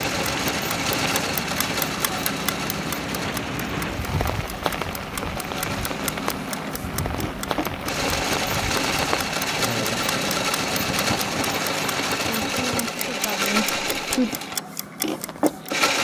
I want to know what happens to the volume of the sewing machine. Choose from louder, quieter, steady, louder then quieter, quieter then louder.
quieter then louder.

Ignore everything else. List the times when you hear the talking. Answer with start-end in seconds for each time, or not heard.
12.2-14.3.